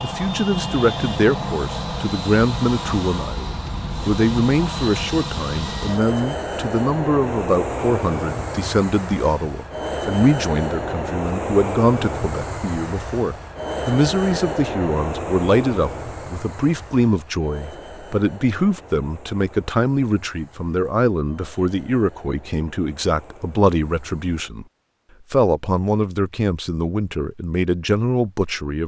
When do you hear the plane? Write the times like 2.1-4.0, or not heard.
0.0-24.4.